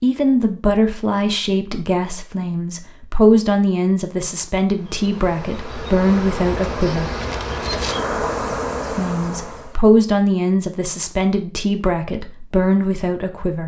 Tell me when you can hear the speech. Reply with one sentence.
You can hear the speech from 0.0 to 7.1 s and from 8.9 to 13.6 s.